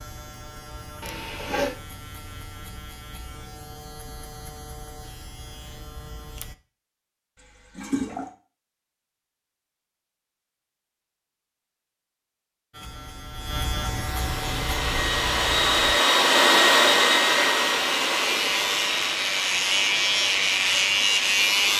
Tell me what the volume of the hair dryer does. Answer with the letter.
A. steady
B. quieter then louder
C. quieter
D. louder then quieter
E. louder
D.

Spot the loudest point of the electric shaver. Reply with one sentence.
The loudest moment of the electric shaver is at 21 seconds.